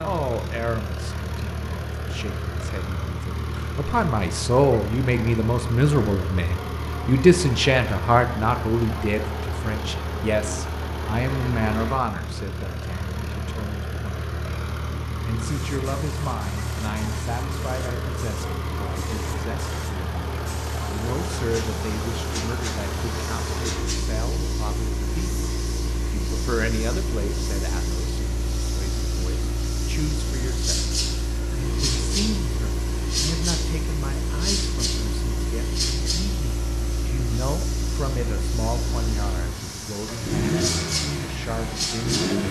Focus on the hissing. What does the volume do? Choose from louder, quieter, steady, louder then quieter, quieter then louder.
louder.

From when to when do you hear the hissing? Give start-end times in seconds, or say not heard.
15.4-42.4.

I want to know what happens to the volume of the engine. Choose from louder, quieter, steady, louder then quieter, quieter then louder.
steady.